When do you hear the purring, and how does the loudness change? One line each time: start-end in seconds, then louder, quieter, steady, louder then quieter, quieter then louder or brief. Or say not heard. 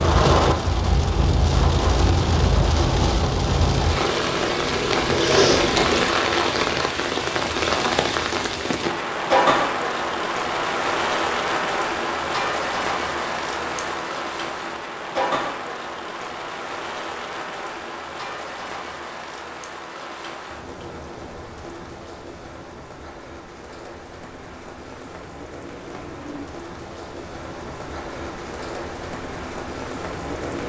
0.0-6.0 louder.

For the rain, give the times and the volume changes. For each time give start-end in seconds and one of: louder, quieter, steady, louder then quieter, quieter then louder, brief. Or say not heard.
0.0-30.6 quieter.